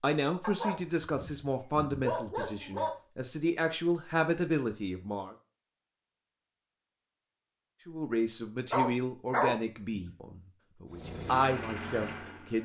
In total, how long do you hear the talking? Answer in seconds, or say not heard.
10 s.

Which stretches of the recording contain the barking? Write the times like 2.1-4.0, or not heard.
0.4-2.9, 8.7-10.1.